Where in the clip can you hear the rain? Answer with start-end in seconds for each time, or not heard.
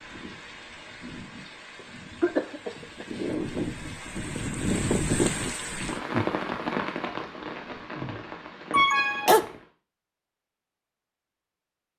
0.0-9.7.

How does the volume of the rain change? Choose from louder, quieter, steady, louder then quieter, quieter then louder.
louder then quieter.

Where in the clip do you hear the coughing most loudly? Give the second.
9 s.